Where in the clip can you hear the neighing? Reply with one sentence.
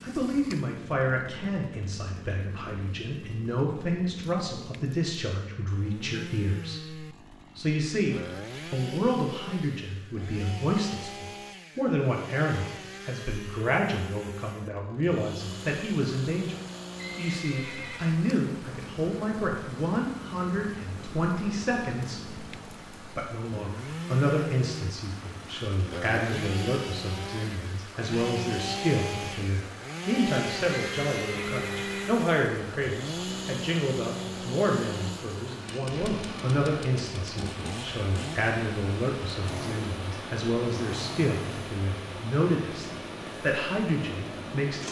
You can hear the neighing from 16.9 to 18.2 s and from 30.9 to 32.1 s.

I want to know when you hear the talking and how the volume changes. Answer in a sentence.
The talking can be heard from 0.0 to 44.8 s, at a steady volume.